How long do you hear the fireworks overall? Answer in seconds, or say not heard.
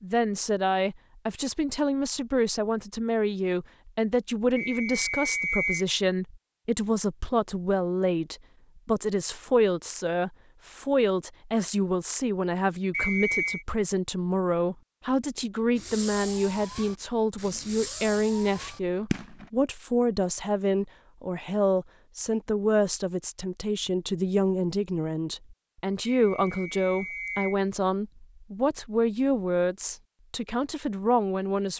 4 s.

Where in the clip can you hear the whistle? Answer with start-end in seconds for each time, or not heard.
4.5-5.8, 12.9-13.7, 26.1-27.6.